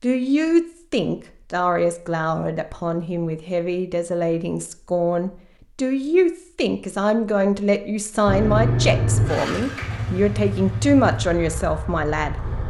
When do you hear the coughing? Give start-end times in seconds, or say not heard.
not heard.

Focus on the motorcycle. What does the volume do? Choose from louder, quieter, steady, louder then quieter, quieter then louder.
quieter.